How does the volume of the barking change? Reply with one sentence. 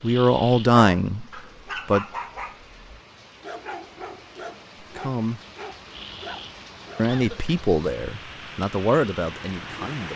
The volume of the barking goes down.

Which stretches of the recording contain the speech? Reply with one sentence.
The speech can be heard from 0.0 to 2.0 s, from 4.8 to 5.4 s and from 7.0 to 10.1 s.